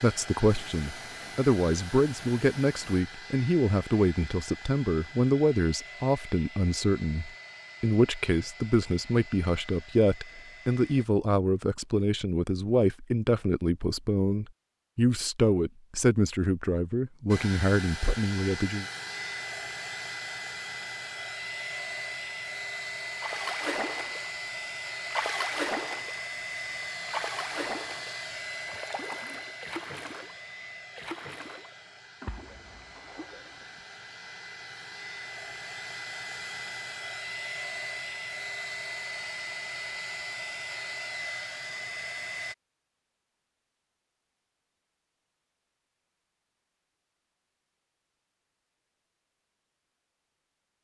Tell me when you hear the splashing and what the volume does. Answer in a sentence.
You can hear the splashing briefly from 23.1 to 24.3 s; briefly from 25.1 to 26.2 s; and from 27.0 to 33.8 s, getting quieter.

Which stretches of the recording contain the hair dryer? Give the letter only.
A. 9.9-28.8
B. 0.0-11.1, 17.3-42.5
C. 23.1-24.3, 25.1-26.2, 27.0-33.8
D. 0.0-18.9
B.